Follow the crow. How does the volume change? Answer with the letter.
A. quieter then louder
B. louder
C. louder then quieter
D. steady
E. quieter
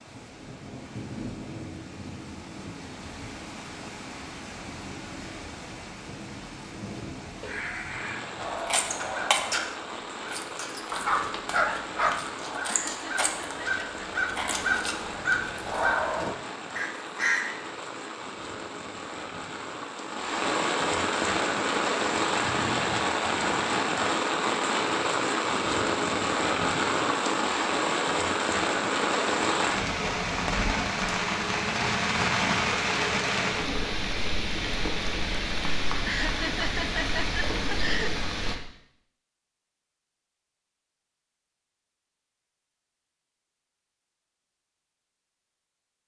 A.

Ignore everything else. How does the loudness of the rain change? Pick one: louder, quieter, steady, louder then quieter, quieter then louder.
louder.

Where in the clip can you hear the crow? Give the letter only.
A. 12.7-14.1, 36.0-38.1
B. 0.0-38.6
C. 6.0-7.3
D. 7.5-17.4
D.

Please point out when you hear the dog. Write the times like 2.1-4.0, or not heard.
10.9-12.2.